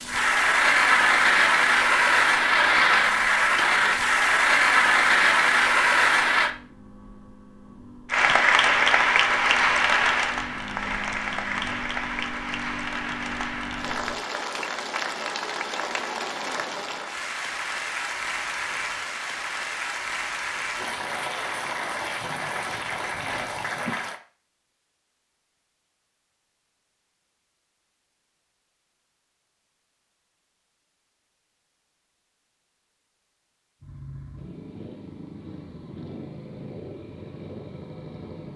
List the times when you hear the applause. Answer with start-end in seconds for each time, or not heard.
0.0-6.5, 8.1-24.2.